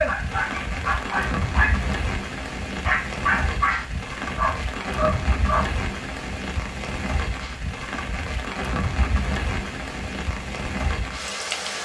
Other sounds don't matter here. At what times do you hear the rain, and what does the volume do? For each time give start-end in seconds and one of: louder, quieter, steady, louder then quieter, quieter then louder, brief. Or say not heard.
0.0-11.7 steady.